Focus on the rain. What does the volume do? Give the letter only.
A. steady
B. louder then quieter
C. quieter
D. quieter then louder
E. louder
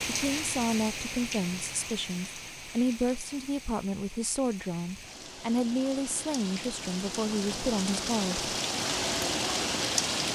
D.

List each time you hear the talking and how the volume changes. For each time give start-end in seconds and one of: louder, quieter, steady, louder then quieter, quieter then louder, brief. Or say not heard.
0.1-8.5 steady.